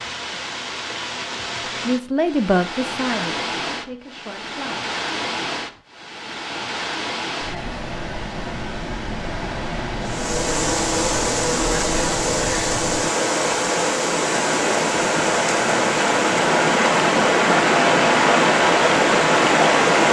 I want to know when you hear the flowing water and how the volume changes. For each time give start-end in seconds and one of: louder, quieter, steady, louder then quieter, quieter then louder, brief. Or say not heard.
0.0-20.0 louder.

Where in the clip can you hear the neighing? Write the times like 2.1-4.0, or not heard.
not heard.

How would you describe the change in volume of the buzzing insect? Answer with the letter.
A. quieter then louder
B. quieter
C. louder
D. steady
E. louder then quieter
B.